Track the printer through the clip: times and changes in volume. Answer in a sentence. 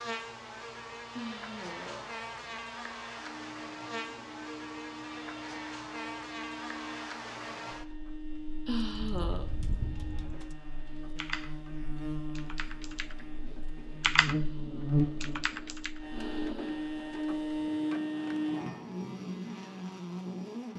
You can hear the printer from 3.1 to 18.6 s, getting louder.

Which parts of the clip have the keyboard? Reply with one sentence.
You can hear the keyboard from 8.8 to 15.9 s.